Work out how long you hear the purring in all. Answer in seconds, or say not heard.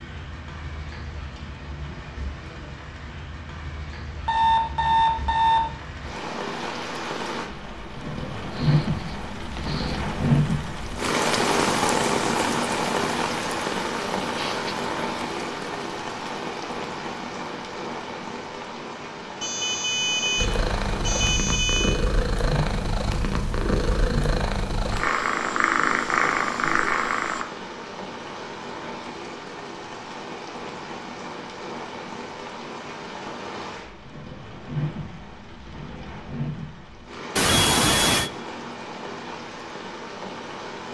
7 s.